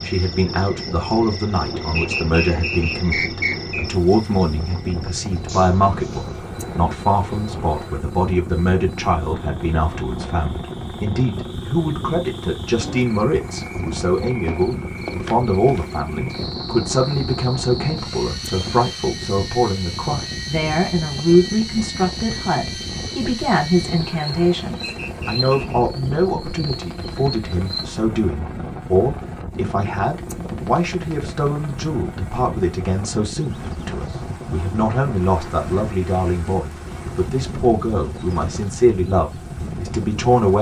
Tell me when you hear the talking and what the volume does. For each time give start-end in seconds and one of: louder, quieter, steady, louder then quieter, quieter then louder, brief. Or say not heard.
0.1-40.5 steady.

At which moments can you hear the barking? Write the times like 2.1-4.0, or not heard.
not heard.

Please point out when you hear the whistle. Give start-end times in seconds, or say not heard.
1.9-4.0, 24.8-25.9.